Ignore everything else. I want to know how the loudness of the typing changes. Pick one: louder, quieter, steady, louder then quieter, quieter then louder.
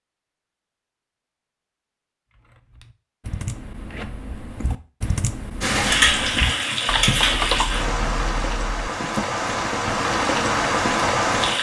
louder then quieter.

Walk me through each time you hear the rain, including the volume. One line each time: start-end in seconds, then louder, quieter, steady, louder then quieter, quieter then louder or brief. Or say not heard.
5.6-11.5 quieter then louder.